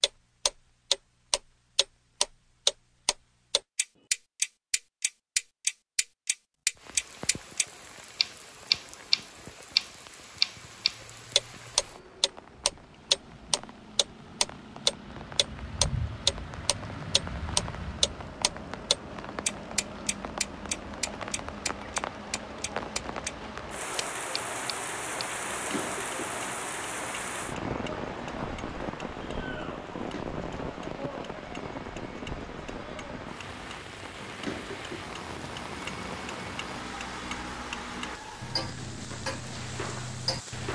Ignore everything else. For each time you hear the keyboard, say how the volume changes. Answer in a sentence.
The keyboard can't be heard in this clip.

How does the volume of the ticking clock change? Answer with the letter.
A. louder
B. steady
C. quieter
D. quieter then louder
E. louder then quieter
D.